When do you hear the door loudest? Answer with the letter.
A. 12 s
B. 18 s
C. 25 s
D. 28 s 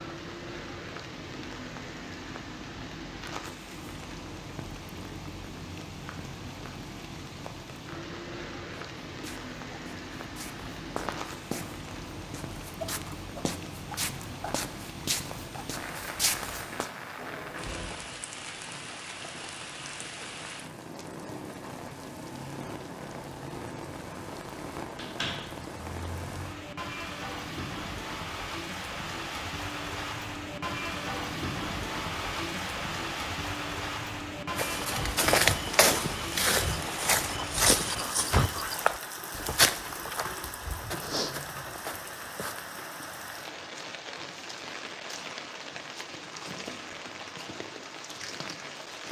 C.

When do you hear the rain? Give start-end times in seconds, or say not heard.
0.0-49.0.